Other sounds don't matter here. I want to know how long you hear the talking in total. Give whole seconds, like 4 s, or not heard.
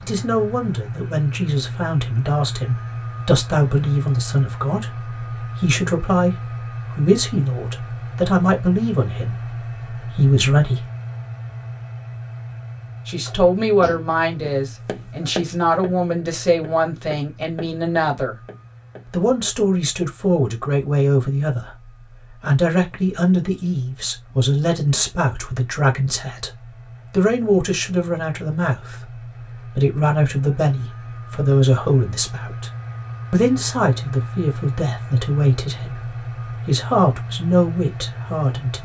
35 s.